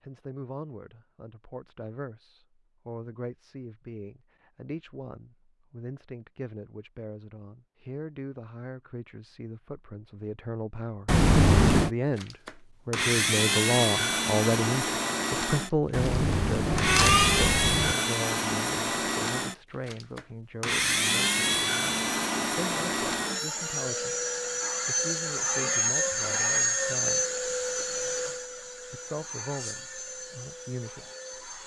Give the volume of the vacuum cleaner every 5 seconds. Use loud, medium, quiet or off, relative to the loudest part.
off, off, loud, loud, loud, loud, quiet.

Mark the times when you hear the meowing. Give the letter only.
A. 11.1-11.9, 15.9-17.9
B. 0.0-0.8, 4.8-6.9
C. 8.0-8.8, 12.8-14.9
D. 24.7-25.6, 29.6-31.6
A.